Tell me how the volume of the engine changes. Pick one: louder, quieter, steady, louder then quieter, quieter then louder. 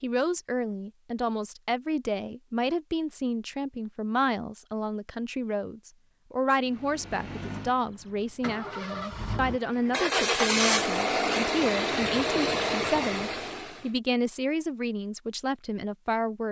louder.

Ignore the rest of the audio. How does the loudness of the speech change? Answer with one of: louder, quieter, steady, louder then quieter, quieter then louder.
steady.